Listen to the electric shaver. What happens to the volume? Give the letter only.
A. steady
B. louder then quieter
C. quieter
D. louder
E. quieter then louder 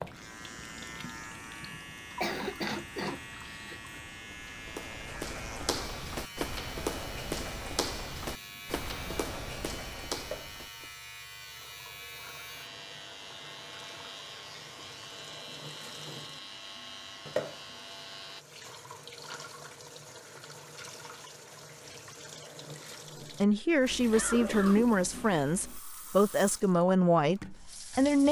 A.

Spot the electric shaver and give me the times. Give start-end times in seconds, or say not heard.
0.0-18.4.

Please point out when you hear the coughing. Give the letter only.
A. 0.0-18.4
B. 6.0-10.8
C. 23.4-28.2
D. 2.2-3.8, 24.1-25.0
D.